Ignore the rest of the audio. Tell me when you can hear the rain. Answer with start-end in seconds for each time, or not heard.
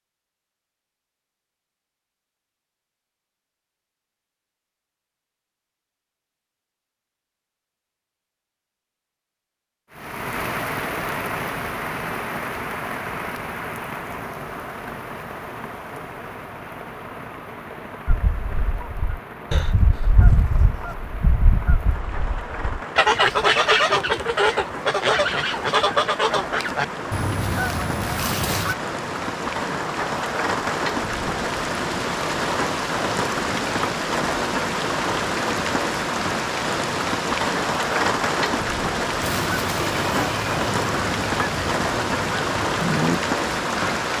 9.9-44.1.